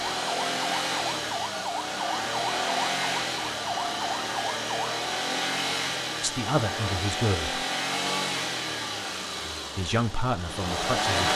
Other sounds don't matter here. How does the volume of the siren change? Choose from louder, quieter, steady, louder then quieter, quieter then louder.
steady.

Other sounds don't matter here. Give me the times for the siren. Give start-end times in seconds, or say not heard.
0.1-5.0.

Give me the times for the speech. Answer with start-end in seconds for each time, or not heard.
6.2-7.6, 9.8-11.3.